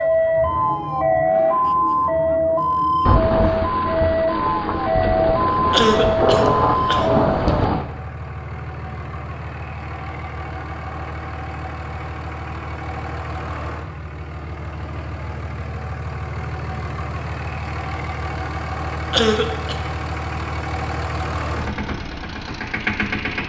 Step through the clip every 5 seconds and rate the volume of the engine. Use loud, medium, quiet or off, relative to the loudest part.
medium, medium, medium, loud, loud.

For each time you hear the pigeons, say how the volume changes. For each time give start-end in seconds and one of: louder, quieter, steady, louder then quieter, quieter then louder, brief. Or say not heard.
not heard.